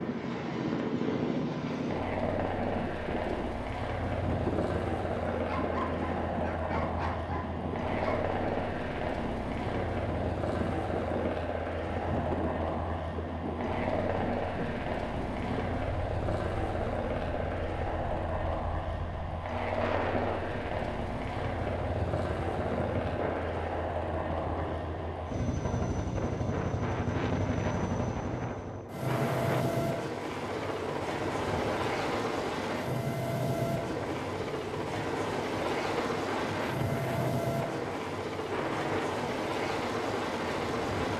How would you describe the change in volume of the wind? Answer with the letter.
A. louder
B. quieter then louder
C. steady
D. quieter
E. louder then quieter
C.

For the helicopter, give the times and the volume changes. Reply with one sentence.
The helicopter can be heard from 0.0 to 41.1 s, at a steady volume.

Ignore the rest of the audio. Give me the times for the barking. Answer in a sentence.
The barking can be heard from 5.3 to 8.2 s.